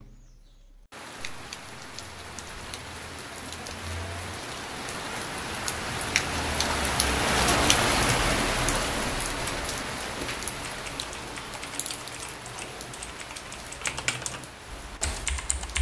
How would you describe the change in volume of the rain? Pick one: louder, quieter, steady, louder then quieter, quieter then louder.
louder then quieter.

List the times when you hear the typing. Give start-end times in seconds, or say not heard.
10.7-15.7.